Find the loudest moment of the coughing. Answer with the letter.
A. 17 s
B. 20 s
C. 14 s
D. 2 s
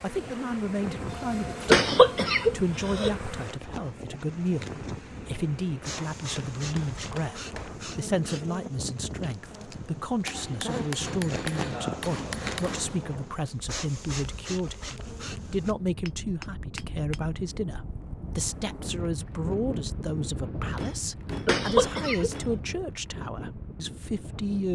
D.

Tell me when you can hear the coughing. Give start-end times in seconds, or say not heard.
1.6-3.1, 21.4-22.4.